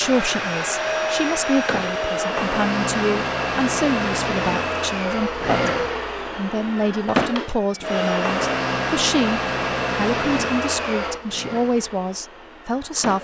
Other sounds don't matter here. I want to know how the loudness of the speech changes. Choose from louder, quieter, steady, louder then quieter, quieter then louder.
steady.